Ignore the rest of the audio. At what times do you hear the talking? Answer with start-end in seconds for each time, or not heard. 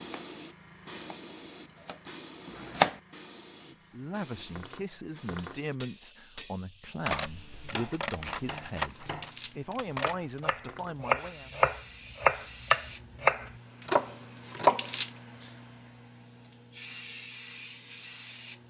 3.7-11.5.